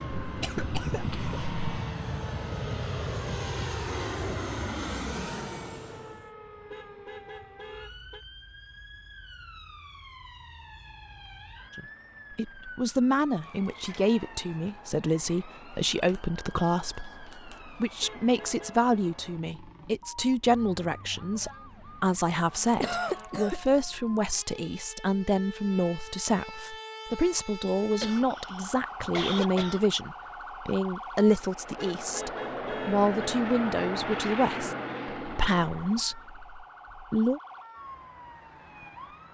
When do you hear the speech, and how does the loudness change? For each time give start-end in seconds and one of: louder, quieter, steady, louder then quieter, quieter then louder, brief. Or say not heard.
11.8-37.4 steady.